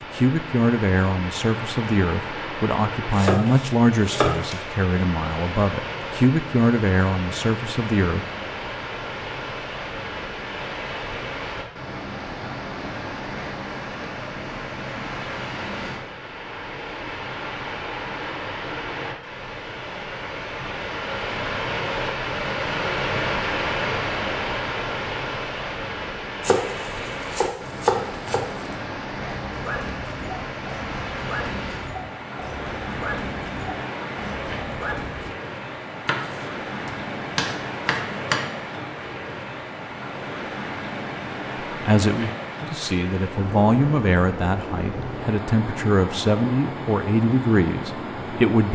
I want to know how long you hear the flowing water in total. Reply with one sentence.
You can hear the flowing water for 49 seconds altogether.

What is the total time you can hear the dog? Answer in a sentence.
You can hear the dog for 6 seconds altogether.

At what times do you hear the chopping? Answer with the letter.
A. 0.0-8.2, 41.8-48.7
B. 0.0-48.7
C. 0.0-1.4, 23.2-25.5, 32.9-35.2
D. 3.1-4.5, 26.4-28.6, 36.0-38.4
D.